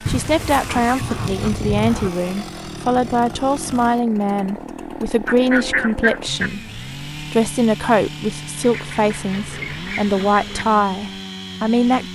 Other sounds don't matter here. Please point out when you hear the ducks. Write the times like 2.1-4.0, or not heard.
0.1-2.1, 5.2-6.5, 8.6-10.7.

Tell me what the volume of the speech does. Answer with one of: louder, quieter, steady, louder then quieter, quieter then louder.
steady.